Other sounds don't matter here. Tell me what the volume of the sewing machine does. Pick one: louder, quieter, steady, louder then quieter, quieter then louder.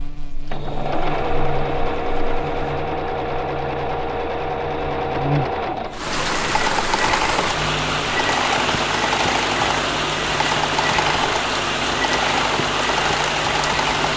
steady.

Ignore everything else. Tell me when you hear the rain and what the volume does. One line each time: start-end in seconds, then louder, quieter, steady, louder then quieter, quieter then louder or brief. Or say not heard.
5.9-14.1 steady.